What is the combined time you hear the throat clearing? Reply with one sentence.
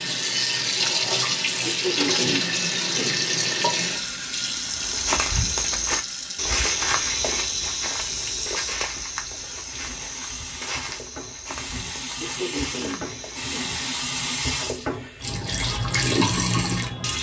You can hear the throat clearing for 3 seconds altogether.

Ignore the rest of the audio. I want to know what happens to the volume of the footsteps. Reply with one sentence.
The loudness of the footsteps goes down.